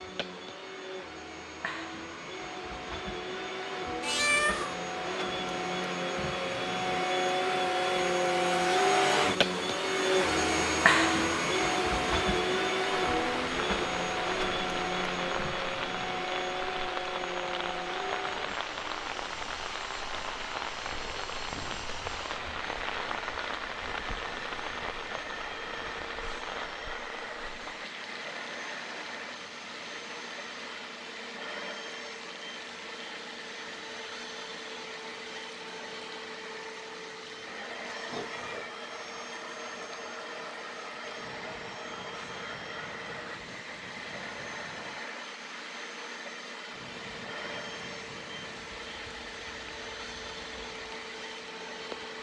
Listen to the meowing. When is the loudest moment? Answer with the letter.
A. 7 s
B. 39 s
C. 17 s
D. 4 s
D.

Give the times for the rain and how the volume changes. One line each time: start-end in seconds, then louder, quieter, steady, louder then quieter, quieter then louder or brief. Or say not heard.
13.1-52.1 quieter.